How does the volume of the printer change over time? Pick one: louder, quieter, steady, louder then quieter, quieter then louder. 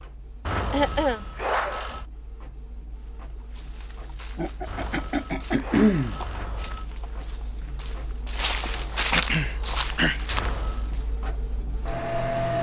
louder.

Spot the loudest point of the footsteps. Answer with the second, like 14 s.
9 s.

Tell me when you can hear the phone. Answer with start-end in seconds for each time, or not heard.
0.5-2.0, 4.7-6.8, 10.3-10.9.